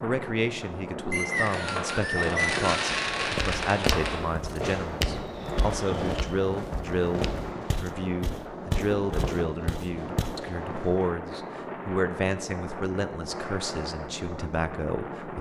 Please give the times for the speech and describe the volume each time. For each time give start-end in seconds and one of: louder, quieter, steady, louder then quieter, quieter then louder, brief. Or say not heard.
0.0-15.3 steady.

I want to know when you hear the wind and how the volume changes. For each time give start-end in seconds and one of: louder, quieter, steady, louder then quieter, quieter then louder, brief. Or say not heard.
0.0-15.3 steady.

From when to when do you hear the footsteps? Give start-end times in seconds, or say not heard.
3.1-10.4.